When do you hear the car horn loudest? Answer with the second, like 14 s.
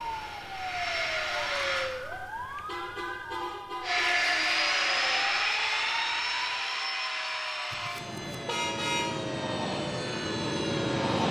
9 s.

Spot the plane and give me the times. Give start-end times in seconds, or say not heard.
0.0-1.9, 3.8-11.2.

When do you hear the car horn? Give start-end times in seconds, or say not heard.
2.1-4.1, 7.7-9.3.